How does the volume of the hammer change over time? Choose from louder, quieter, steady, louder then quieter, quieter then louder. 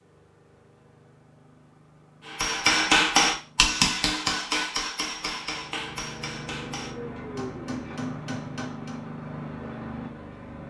quieter.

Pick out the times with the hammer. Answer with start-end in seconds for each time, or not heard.
2.2-9.1.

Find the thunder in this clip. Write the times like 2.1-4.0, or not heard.
not heard.